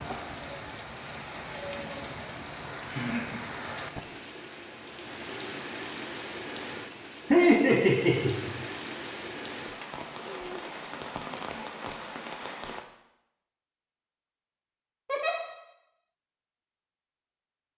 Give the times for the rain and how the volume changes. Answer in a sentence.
The rain can be heard from 0.0 to 12.8 s, at a steady volume.